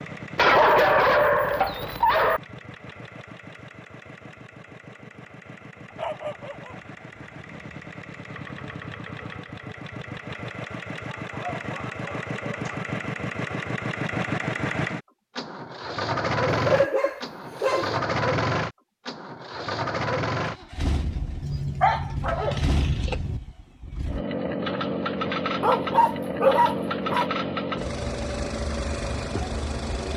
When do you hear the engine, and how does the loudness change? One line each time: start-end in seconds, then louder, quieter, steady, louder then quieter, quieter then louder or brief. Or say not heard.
0.0-30.1 louder.